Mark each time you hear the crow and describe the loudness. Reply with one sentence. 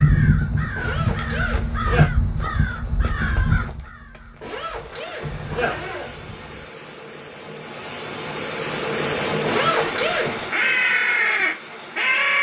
You can hear the crow from 0.0 to 6.7 s, getting quieter then louder; and briefly from 10.5 to 12.3 s.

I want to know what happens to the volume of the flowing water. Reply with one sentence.
The volume of the flowing water goes up, then down.